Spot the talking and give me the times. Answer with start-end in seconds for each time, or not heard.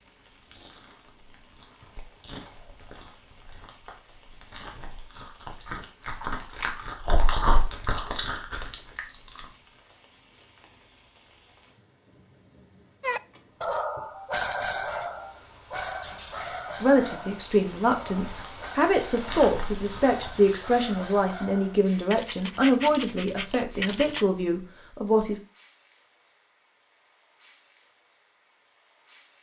16.8-25.4.